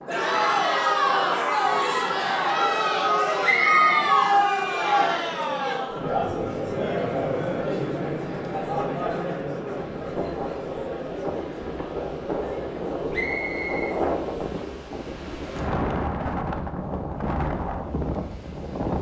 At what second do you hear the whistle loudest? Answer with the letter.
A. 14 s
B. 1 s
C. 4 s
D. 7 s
C.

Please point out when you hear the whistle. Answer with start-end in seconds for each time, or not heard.
3.4-4.0, 13.1-13.9.